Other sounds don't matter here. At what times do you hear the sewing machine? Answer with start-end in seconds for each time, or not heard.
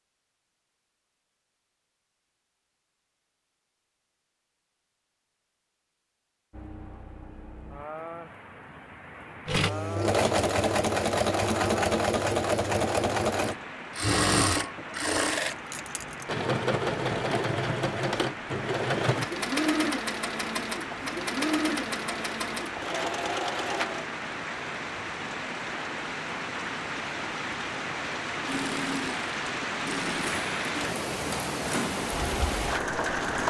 9.4-24.1, 28.4-33.4.